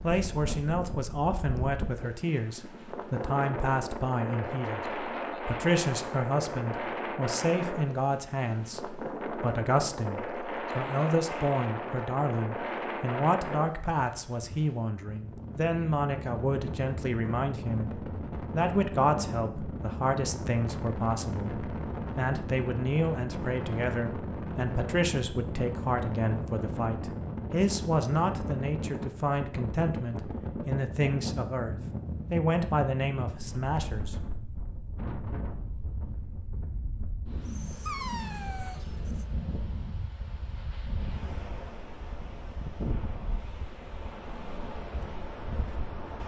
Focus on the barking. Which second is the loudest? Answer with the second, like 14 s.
38 s.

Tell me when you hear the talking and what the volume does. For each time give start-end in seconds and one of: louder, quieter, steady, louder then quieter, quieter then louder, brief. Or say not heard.
0.0-34.1 steady.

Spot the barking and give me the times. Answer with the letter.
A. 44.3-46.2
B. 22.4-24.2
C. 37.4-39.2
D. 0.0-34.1
C.